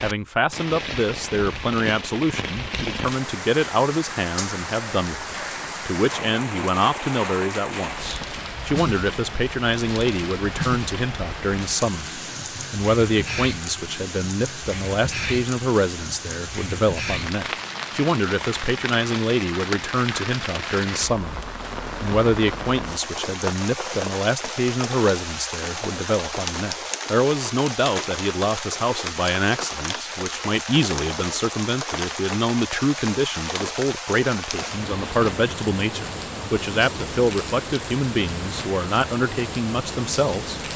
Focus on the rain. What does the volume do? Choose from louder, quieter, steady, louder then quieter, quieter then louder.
steady.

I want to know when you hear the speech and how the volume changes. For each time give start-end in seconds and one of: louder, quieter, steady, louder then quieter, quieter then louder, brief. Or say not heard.
0.0-40.6 steady.